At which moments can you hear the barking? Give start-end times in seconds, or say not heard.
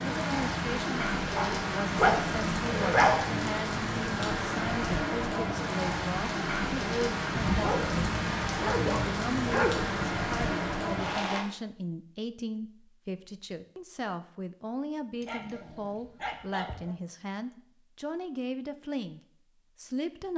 1.4-3.3, 7.3-9.9, 15.2-16.9.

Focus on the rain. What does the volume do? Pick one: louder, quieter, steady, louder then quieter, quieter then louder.
steady.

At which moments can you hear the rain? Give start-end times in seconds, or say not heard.
0.0-11.4.